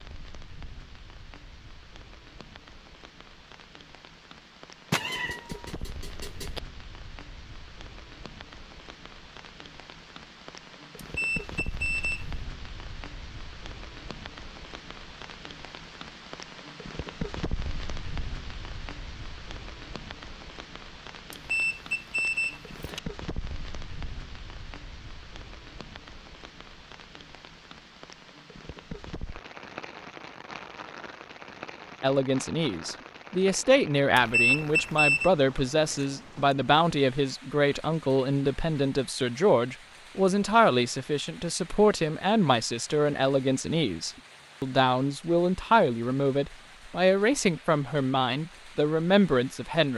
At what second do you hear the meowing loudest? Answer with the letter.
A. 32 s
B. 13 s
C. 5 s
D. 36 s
C.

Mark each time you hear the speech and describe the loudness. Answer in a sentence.
The speech can be heard from 32.0 to 49.9 s, at a steady volume.